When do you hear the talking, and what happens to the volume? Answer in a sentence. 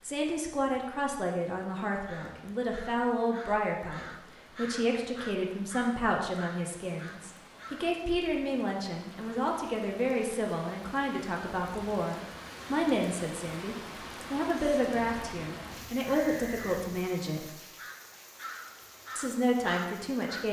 The talking can be heard from 0.0 to 17.5 s, at a steady volume; and briefly from 19.1 to 20.4 s.